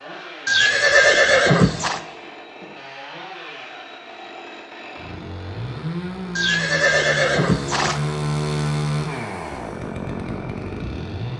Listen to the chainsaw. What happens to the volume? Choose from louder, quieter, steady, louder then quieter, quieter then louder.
louder.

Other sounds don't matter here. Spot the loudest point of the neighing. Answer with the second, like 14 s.
1 s.